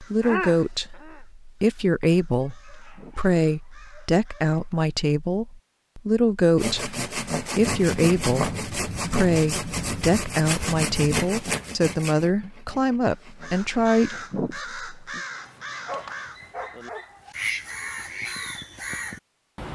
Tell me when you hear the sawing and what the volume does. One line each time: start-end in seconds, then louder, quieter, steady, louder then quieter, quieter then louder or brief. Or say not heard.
6.5-14.3 quieter.